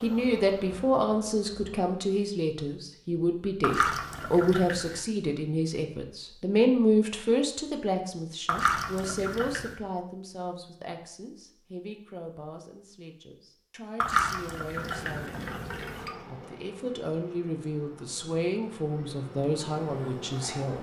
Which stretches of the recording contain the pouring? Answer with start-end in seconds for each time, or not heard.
3.6-5.0, 8.4-9.8, 14.0-16.1.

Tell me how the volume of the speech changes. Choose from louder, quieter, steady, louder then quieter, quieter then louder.
quieter then louder.